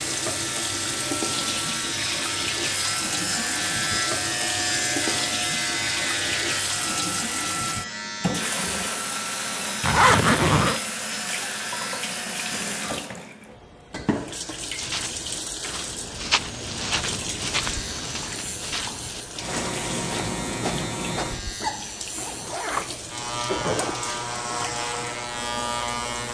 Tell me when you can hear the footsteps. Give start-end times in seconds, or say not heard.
14.8-21.4.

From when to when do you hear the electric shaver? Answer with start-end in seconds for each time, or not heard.
0.0-13.0, 17.6-26.2.